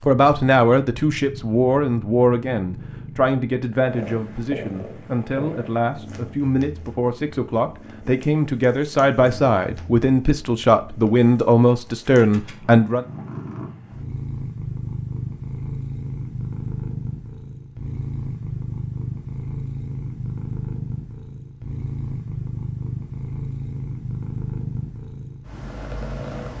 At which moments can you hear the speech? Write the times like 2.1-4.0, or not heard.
0.1-13.1.